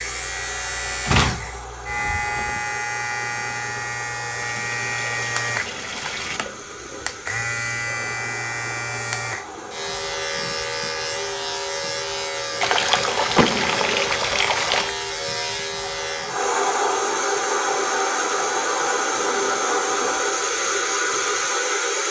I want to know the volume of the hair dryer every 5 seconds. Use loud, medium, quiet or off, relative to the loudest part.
quiet, quiet, quiet, loud, loud.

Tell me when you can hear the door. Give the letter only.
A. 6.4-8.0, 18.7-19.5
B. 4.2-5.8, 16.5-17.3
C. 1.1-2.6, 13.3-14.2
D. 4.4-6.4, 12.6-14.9
C.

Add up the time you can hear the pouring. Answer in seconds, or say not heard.
4 s.